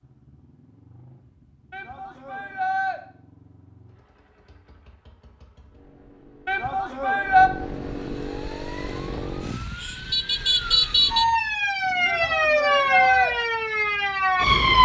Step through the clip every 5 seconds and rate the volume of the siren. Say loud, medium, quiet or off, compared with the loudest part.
off, quiet, loud.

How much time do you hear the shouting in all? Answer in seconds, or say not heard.
4 s.